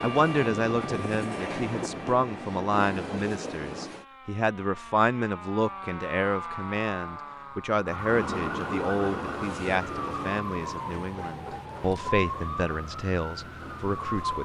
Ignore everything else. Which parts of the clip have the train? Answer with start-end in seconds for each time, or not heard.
0.0-4.0, 8.1-14.4.